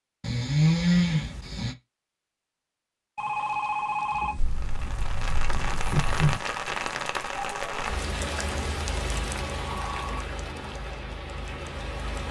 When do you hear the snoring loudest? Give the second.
1 s.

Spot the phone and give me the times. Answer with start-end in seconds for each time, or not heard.
3.1-4.5.